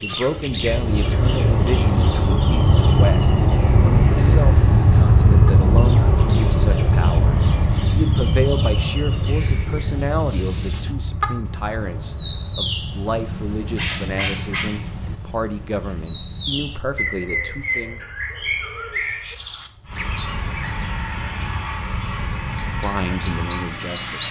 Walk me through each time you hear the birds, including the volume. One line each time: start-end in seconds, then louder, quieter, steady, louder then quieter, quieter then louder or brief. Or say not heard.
0.0-24.2 louder.